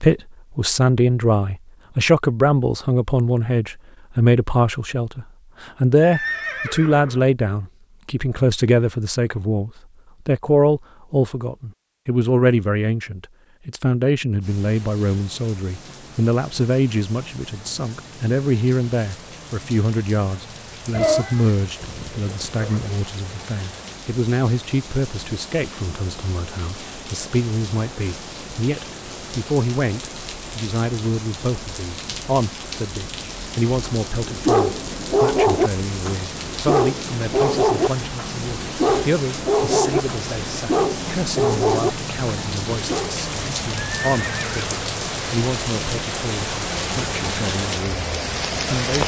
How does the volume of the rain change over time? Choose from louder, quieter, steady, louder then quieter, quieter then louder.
louder.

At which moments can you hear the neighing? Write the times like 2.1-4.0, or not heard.
6.0-7.2, 20.9-22.9, 44.0-44.9.